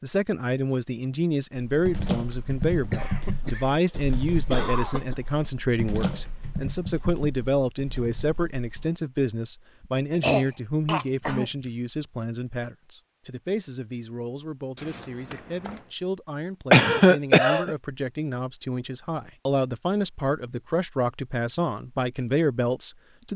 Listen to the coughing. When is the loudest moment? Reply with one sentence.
The loudest moment of the coughing is at 17 seconds.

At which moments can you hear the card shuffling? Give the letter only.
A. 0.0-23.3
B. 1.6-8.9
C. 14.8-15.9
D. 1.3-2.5
C.